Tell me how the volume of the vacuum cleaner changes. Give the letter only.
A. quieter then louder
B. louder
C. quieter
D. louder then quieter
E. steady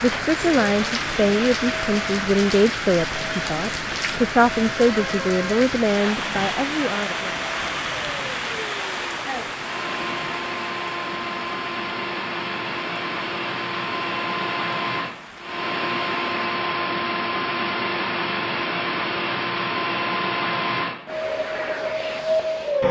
B.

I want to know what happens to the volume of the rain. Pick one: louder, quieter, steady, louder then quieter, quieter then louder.
quieter.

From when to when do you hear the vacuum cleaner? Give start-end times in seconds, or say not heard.
0.0-22.8.